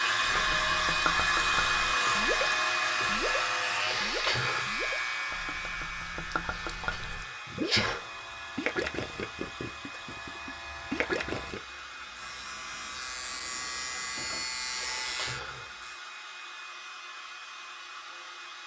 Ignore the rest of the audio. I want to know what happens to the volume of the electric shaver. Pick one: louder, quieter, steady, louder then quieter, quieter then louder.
quieter then louder.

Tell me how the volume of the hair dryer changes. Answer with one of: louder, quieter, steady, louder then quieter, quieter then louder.
quieter.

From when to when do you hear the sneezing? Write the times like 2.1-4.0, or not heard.
3.8-4.7, 6.5-8.1, 14.7-15.7.